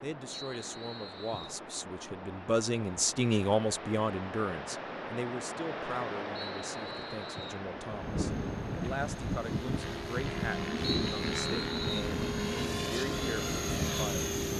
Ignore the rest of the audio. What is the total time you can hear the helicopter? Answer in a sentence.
You can hear the helicopter for 7 seconds altogether.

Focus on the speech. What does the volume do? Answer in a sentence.
The volume of the speech goes up, then down.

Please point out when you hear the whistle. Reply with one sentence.
You can hear the whistle from 0.3 to 1.6 s, from 6.3 to 7.7 s and from 10.8 to 12.1 s.